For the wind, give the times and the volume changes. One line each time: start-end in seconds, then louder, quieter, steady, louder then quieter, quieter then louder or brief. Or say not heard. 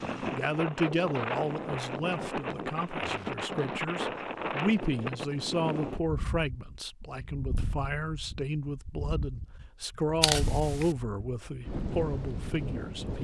0.0-13.1 quieter then louder.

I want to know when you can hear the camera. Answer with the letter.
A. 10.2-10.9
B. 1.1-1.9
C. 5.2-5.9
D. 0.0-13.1
A.